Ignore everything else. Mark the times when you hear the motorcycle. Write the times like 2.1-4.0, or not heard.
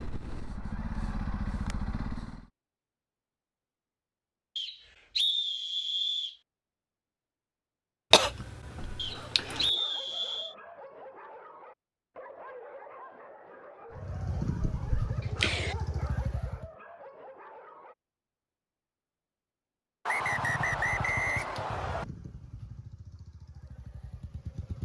0.0-2.5, 13.9-16.7, 20.2-24.7.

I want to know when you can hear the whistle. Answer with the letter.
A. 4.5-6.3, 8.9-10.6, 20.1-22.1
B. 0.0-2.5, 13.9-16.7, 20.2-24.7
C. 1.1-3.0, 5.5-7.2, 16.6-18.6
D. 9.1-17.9
A.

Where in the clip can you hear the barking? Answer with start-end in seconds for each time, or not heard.
9.1-17.9.